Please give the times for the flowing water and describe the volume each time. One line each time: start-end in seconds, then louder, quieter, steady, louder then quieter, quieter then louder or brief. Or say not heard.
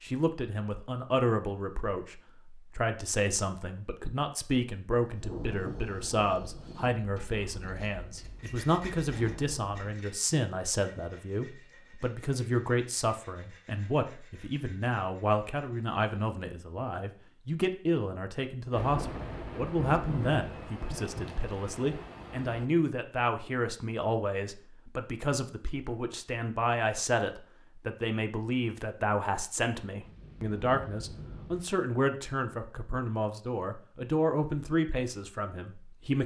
not heard.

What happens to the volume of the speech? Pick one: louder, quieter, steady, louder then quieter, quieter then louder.
steady.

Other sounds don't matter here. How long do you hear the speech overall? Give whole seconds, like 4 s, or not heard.
36 s.